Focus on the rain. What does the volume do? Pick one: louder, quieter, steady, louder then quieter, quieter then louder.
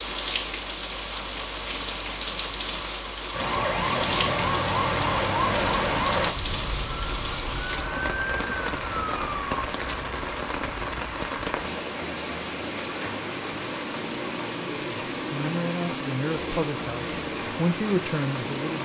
steady.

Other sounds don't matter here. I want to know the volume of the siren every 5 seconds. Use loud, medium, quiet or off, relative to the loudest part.
loud, loud, off, off.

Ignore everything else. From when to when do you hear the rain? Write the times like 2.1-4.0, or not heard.
0.0-18.7.